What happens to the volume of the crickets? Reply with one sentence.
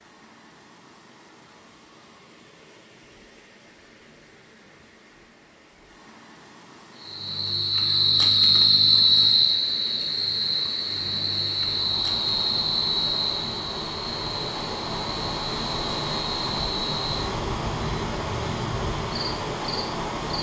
The loudness of the crickets goes down.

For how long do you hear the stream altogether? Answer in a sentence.
You can hear the stream for 20 seconds altogether.